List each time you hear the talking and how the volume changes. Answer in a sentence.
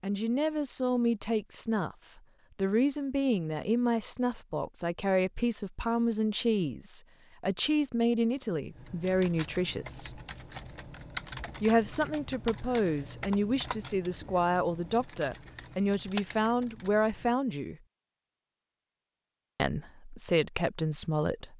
You can hear the talking from 0.0 to 10.2 s, at a steady volume; from 11.6 to 17.8 s, at a steady volume; and briefly from 19.6 to 21.5 s.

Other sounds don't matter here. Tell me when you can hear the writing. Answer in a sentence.
The writing can't be heard in this clip.